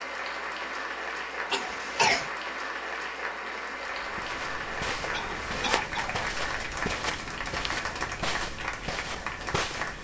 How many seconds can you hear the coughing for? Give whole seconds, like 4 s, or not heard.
2 s.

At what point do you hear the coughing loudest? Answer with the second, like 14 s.
2 s.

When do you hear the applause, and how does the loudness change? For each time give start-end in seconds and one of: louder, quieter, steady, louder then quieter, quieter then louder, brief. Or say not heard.
0.0-9.9 steady.